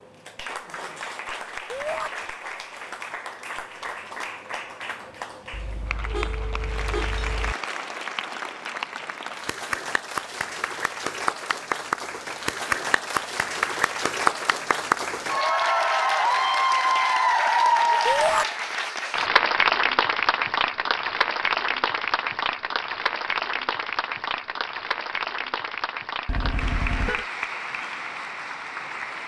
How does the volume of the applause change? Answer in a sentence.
The loudness of the applause goes up, then down.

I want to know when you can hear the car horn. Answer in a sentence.
You can hear the car horn from 5.5 to 7.5 s and from 26.2 to 27.2 s.